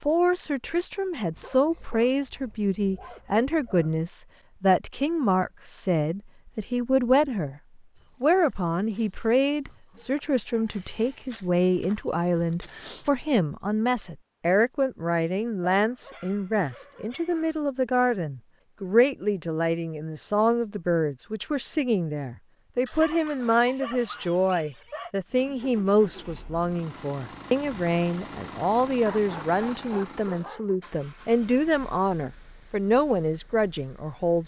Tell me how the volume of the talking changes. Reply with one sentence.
The volume of the talking stays about the same.